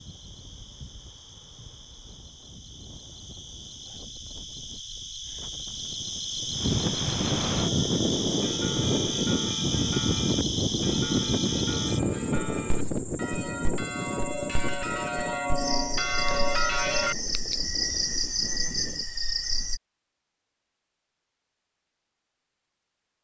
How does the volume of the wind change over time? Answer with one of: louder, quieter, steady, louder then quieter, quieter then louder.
louder then quieter.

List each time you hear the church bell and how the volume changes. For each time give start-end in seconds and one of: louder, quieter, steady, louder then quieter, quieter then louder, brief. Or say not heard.
7.6-17.1 louder.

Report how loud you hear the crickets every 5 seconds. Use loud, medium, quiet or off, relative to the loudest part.
quiet, loud, loud, loud, off.